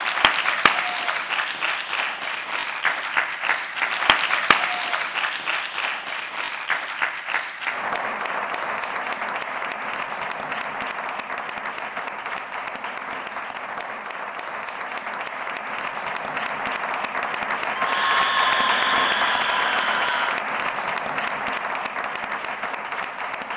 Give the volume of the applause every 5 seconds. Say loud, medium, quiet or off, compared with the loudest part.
loud, loud, medium, loud, loud.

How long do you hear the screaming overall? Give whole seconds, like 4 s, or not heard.
3 s.